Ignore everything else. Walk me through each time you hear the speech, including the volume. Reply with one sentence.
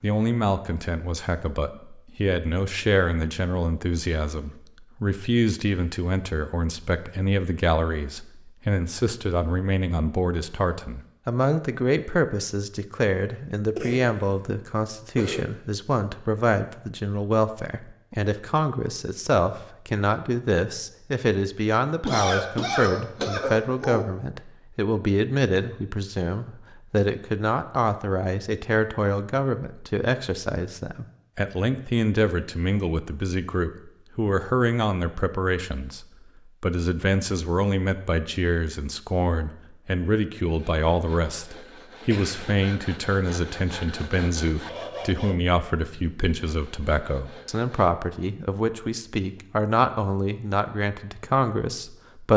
The speech can be heard from 0.0 to 52.3 s, at a steady volume.